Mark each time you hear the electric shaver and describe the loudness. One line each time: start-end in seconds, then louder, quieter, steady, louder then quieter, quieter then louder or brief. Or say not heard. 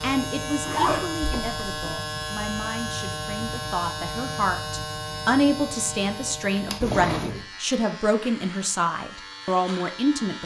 0.0-10.4 quieter.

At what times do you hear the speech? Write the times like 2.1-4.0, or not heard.
0.0-10.4.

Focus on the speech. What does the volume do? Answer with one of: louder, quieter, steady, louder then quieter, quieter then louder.
louder.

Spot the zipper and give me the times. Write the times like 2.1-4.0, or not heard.
0.6-1.7, 6.8-7.5.